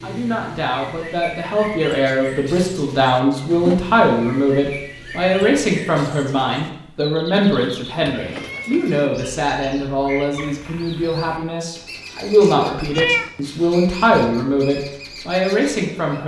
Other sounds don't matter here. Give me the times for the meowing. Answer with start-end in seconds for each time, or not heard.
3.3-3.8, 7.3-9.1, 12.4-13.3.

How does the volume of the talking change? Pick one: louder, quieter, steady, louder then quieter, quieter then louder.
steady.